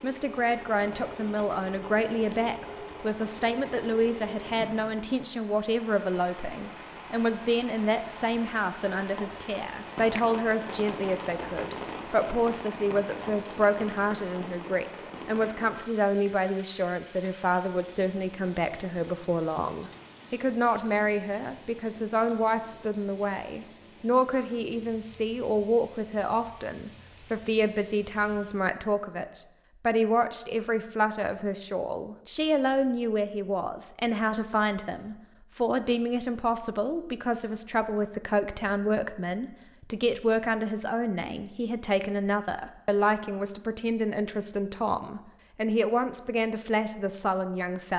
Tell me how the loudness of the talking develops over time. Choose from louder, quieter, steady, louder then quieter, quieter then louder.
steady.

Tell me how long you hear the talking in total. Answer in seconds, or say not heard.
48 s.